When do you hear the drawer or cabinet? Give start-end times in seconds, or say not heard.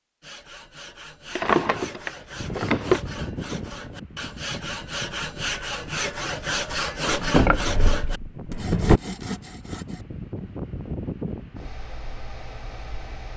1.4-3.0, 7.1-9.0.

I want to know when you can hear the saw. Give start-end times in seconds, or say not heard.
0.2-10.1.